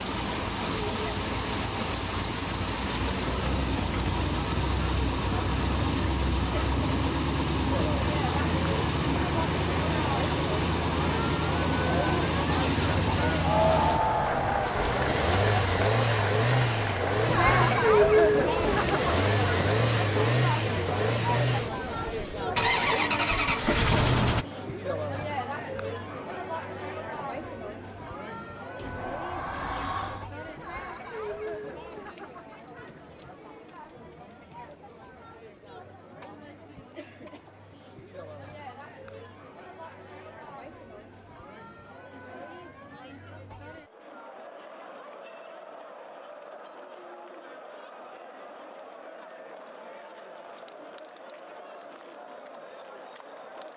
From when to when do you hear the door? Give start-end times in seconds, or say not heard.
28.8-30.3.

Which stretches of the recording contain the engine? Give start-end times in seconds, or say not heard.
0.0-24.4.